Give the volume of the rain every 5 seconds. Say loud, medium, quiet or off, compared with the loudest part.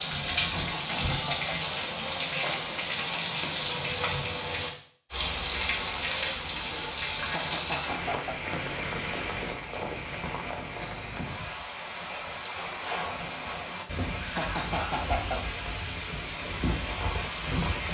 loud, loud, medium, loud.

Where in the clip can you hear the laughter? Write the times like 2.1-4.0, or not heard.
0.4-1.5, 7.2-8.4, 14.2-15.4.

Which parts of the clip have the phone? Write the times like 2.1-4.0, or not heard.
not heard.